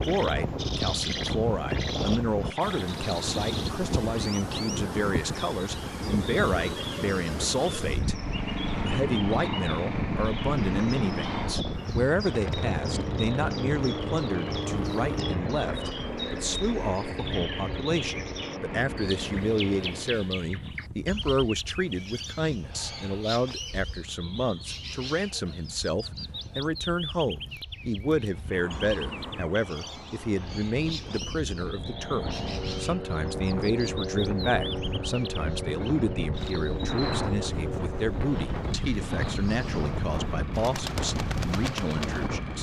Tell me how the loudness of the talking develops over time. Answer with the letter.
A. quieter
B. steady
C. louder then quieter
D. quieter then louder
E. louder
B.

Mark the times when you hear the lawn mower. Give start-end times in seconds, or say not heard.
8.0-20.2, 31.7-42.5.